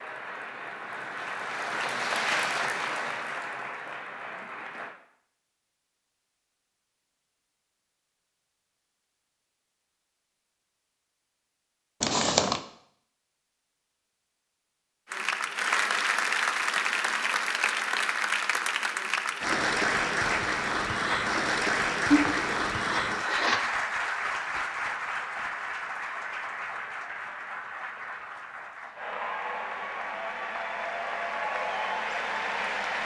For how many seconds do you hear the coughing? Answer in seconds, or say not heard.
2 s.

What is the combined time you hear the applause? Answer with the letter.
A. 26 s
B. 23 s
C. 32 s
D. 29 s
B.